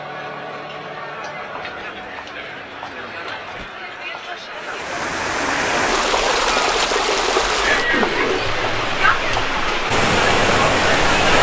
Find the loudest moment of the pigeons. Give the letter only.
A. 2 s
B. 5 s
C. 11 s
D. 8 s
D.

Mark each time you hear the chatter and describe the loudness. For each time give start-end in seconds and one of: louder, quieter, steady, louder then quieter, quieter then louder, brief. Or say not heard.
0.0-11.3 louder.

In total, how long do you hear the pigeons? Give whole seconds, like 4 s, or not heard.
4 s.